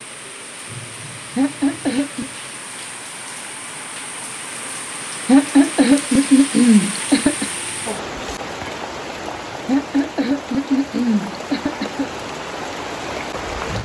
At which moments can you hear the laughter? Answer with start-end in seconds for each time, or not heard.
1.4-2.3, 5.2-7.5, 9.7-12.1.